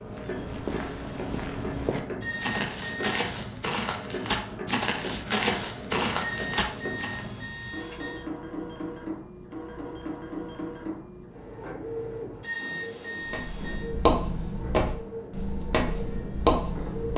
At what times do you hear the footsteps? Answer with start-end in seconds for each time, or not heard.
0.0-7.2, 13.2-17.1.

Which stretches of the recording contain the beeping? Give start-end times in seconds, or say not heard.
2.2-3.2, 6.2-8.3, 12.4-13.9.